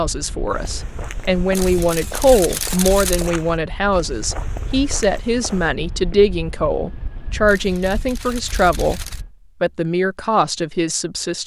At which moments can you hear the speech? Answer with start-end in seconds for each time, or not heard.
0.0-11.4.